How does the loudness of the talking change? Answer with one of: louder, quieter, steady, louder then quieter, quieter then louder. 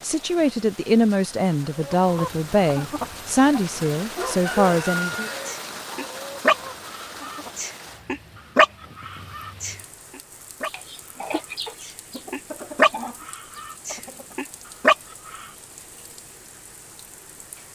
steady.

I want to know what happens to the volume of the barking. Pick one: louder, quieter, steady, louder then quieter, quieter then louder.
louder.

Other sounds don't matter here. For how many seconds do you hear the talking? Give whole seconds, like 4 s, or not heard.
5 s.